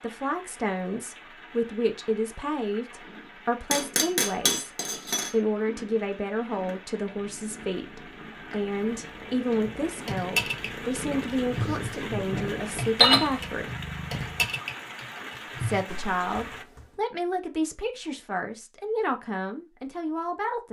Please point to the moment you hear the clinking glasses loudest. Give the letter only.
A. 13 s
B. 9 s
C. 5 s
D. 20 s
A.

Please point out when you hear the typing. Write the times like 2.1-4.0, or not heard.
9.7-16.9.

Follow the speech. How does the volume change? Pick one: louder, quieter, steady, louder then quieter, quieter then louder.
steady.